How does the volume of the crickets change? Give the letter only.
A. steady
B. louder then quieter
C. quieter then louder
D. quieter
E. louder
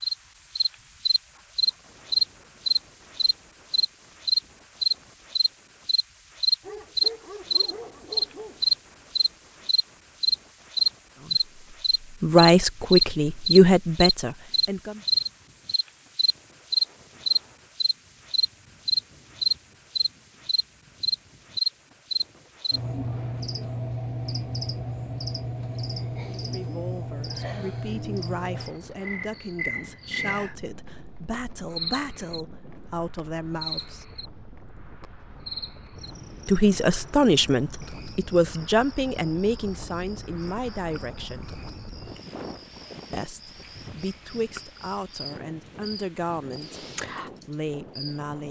D.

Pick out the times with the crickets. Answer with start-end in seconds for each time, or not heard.
0.0-48.2.